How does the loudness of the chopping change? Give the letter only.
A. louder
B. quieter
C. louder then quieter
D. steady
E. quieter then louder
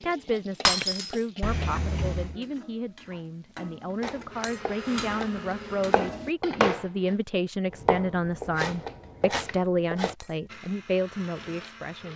C.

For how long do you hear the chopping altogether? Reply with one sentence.
You can hear the chopping for 6 seconds altogether.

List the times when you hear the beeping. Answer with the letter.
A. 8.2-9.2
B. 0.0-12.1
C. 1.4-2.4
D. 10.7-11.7
C.